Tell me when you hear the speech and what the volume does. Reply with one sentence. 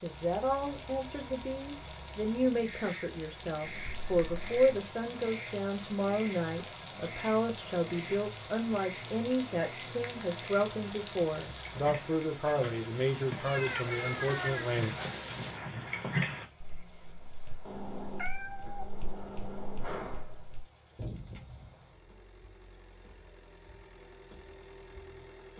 The speech can be heard from 0.0 to 14.9 s, at a steady volume.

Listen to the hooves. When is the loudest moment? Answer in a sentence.
The loudest moment of the hooves is at 16 seconds.